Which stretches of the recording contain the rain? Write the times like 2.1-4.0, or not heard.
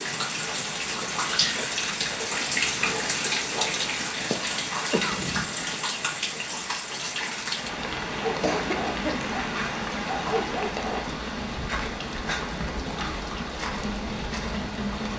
0.0-15.1.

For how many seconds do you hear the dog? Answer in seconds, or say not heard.
3 s.